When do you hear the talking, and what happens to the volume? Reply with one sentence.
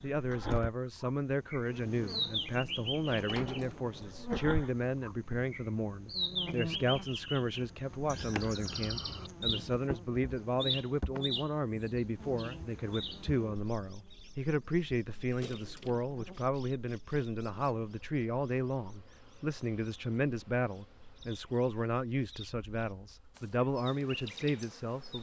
You can hear the talking from 0.0 to 25.1 s, at a steady volume.